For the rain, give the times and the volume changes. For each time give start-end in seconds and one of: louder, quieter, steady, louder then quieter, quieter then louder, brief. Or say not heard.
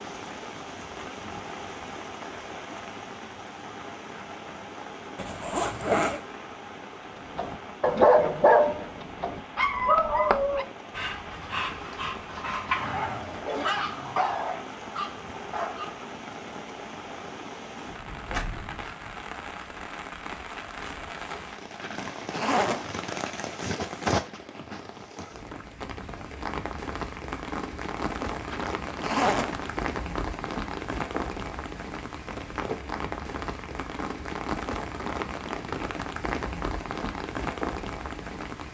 0.0-38.6 louder.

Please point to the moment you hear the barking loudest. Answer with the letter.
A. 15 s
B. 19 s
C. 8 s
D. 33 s
C.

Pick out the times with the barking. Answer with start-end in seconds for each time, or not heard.
7.3-15.9.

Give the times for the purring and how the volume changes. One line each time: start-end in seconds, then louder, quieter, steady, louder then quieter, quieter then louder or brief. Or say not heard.
not heard.